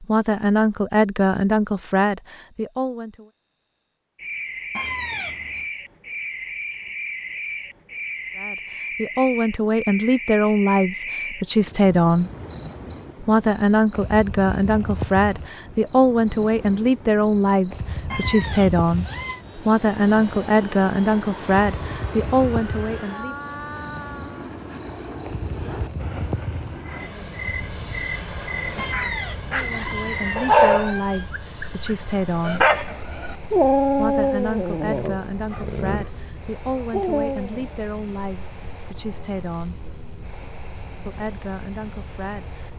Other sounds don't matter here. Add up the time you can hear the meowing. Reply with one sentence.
You can hear the meowing for 5 seconds altogether.